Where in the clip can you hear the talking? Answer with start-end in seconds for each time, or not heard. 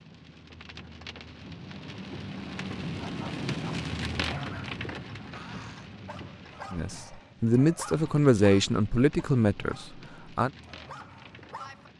6.7-10.5.